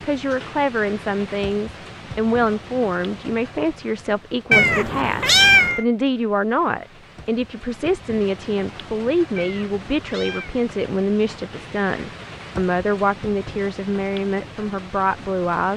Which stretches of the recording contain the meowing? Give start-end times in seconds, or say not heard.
4.5-5.8, 9.3-10.6.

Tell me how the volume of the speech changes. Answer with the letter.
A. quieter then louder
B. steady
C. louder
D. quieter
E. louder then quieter
B.